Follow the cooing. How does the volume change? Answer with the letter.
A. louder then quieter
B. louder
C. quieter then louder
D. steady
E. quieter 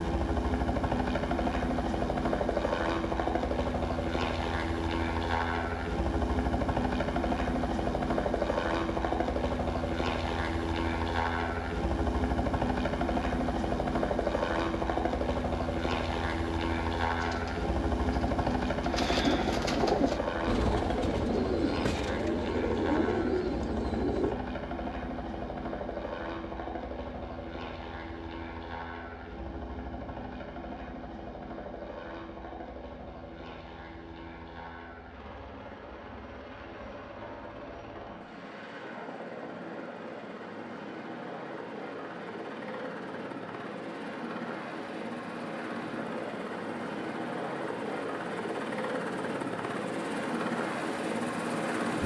B.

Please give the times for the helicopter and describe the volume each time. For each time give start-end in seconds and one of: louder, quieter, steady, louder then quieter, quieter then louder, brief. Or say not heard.
0.0-52.0 quieter then louder.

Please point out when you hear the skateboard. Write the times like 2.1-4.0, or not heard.
not heard.